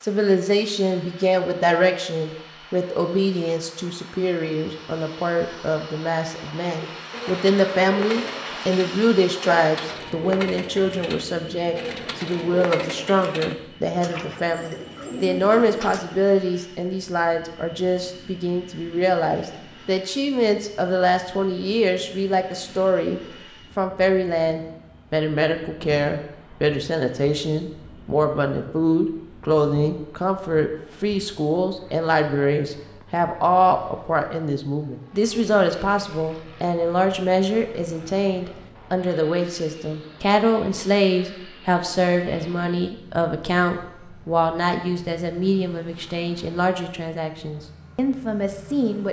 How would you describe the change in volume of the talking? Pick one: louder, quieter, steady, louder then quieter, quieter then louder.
steady.